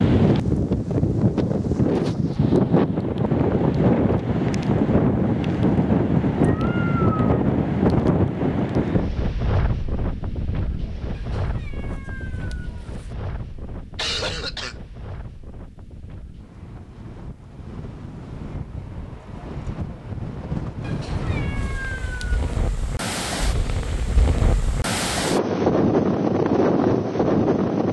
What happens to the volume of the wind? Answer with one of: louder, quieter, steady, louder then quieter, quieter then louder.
quieter then louder.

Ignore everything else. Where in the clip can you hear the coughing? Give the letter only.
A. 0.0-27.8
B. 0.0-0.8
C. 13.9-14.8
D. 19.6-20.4
C.